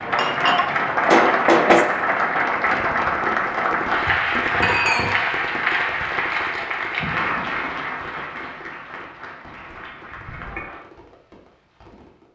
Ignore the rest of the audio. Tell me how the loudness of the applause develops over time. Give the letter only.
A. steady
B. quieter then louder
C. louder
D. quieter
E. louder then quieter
D.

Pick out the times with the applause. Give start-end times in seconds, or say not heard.
0.0-10.8.